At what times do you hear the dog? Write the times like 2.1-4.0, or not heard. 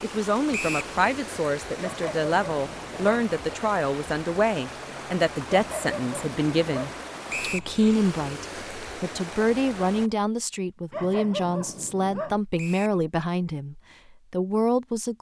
1.8-3.2, 5.5-7.0, 10.9-12.4.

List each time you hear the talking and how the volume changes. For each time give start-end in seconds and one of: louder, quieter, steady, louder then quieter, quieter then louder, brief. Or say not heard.
0.0-15.1 steady.